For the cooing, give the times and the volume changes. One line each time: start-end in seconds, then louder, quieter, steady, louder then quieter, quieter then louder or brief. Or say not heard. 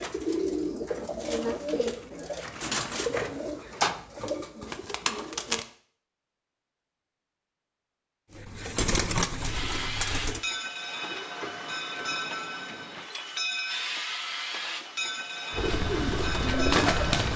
0.0-5.7 steady
8.3-10.4 brief
15.5-17.3 brief.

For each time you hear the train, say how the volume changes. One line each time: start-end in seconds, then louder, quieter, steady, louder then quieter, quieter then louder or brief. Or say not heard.
9.3-17.3 steady.